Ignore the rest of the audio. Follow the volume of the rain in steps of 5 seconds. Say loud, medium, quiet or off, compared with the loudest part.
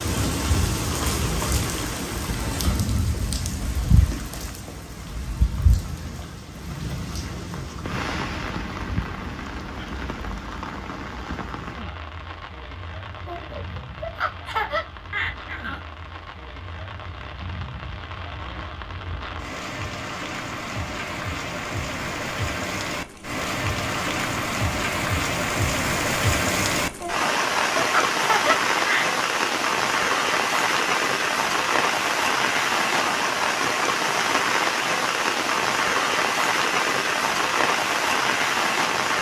medium, medium, quiet, quiet, medium, loud, loud, loud.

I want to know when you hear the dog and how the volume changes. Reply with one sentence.
You can't hear the dog here.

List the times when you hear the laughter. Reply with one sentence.
The laughter can be heard from 13.2 to 15.8 s and from 27.0 to 29.1 s.